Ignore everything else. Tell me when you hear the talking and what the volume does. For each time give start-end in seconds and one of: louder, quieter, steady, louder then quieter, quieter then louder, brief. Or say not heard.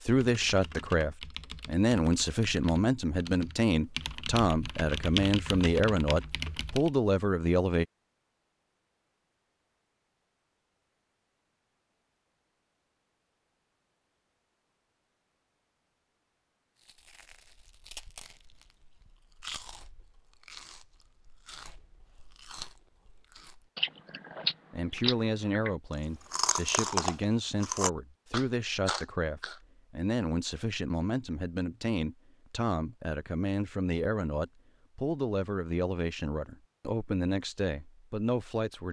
0.0-7.8 steady
24.7-38.8 steady.